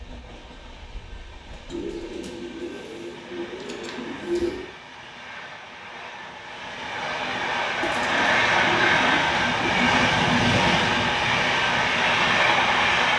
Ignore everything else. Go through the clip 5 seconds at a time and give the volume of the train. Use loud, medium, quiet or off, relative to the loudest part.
quiet, loud, loud.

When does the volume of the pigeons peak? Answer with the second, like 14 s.
4 s.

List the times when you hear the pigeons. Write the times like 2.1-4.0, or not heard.
1.7-4.7, 7.8-9.7.